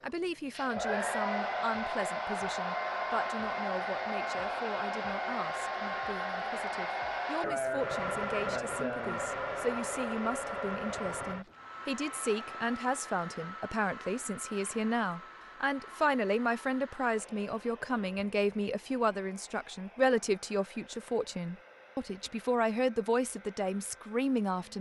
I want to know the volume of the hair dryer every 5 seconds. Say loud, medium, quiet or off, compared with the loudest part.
loud, loud, medium, quiet, quiet.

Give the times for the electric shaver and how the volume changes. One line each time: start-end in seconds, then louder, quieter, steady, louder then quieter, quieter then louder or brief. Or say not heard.
not heard.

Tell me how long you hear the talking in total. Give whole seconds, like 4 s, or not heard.
25 s.